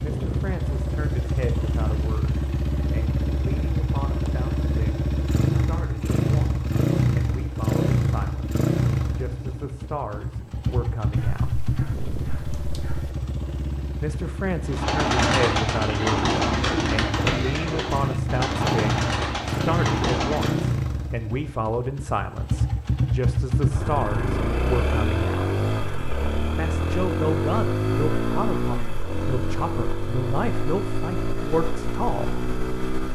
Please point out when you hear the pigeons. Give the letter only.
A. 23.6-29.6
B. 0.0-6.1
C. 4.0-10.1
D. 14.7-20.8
D.